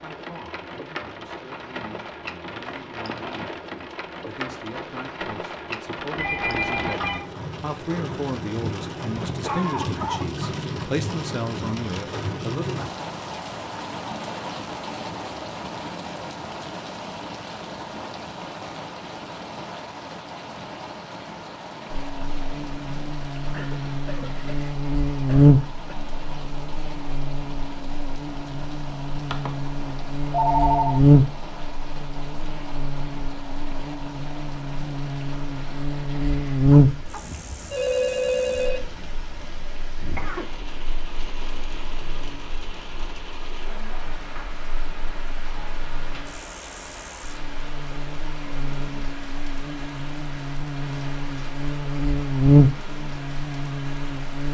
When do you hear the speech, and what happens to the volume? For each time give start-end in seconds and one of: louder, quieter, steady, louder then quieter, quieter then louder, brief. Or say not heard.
0.0-12.8 louder.